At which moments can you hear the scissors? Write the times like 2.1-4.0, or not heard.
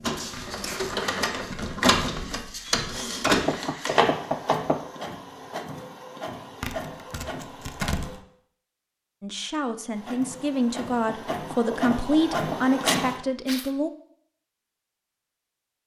not heard.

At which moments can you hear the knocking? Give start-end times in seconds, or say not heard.
3.2-4.8, 11.1-12.7.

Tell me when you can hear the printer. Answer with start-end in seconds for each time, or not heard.
0.0-8.2, 9.9-13.2.